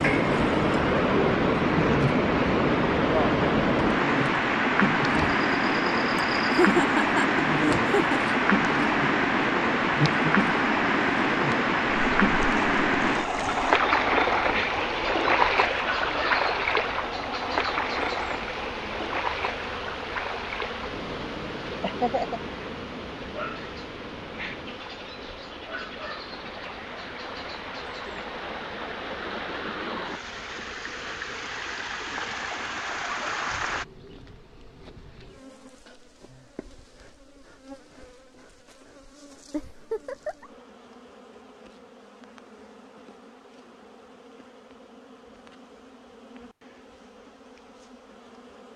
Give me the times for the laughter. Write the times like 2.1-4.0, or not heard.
6.2-8.3, 21.8-22.4, 39.5-40.5.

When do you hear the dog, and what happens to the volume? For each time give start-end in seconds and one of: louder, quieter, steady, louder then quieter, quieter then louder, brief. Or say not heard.
not heard.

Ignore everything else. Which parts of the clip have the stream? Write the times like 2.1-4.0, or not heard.
0.0-33.9.